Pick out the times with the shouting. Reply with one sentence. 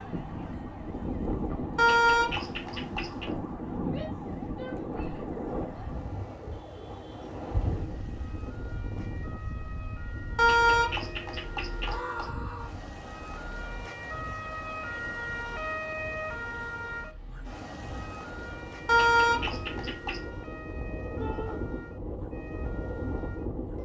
The shouting can be heard from 3.9 to 5.3 s, from 11.8 to 12.7 s and from 21.1 to 21.6 s.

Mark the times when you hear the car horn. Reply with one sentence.
The car horn can be heard from 1.8 to 3.3 s, from 10.3 to 12.3 s and from 18.9 to 20.2 s.